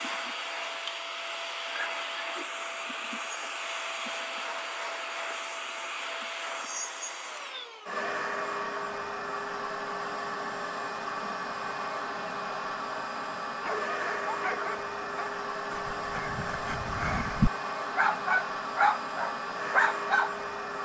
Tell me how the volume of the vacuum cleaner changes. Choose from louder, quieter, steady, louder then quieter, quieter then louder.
steady.